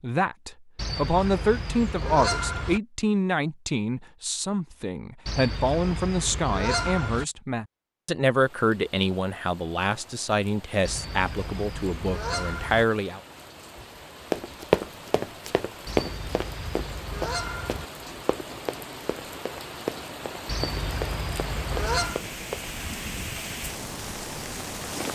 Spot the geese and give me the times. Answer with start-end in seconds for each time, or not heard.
0.8-2.8, 5.2-7.2, 10.8-12.8, 15.8-17.9, 20.4-22.2.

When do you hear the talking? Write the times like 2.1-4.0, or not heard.
0.0-13.2.